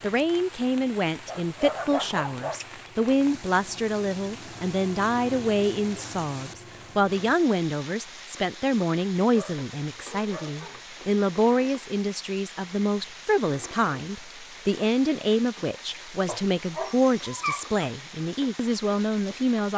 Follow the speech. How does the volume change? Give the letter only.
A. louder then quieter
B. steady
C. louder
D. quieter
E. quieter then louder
B.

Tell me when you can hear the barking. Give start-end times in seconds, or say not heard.
1.2-2.6, 9.3-10.9, 16.2-17.8.